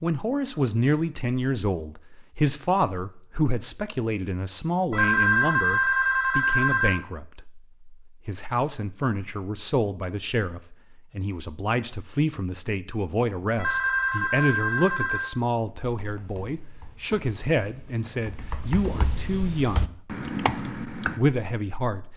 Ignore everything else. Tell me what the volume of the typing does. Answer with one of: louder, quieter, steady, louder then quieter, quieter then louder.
louder.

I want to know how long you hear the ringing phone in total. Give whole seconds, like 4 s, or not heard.
4 s.